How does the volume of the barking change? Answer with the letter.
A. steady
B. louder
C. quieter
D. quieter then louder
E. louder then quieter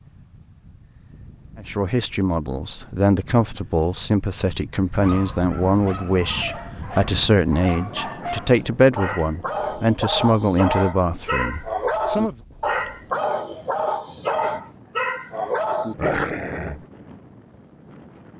B.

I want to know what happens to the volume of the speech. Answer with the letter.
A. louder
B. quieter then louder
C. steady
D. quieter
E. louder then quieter
C.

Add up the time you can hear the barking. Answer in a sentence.
You can hear the barking for 12 seconds altogether.